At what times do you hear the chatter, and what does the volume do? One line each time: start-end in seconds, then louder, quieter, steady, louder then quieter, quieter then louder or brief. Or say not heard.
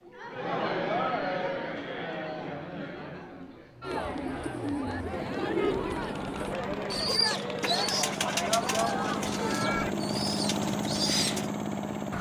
0.1-9.9 quieter then louder.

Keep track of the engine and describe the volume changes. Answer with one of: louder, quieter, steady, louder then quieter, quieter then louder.
louder.